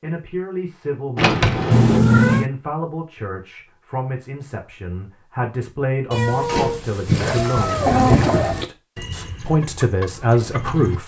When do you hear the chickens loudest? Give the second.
8 s.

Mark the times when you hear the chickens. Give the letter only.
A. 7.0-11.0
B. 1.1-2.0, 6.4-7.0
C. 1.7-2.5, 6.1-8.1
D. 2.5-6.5
A.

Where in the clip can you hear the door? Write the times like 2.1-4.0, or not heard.
1.1-2.0, 6.4-7.0.